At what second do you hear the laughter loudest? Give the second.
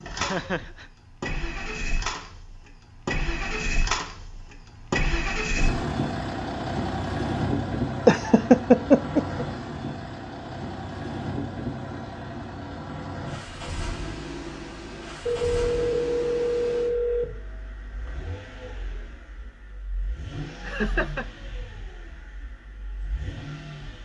9 s.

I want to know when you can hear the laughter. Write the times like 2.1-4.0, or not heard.
0.1-0.8, 8.1-9.4, 20.6-21.2.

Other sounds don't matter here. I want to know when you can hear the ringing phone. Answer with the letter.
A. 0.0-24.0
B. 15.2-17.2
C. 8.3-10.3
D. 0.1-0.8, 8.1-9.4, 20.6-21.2
B.